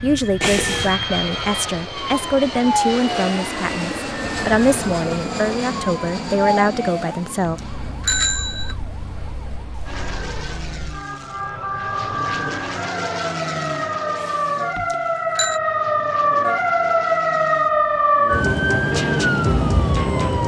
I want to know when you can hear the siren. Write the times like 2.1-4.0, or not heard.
0.0-20.4.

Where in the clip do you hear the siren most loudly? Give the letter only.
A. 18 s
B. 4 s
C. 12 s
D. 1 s
A.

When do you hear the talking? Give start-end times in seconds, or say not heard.
0.0-7.6.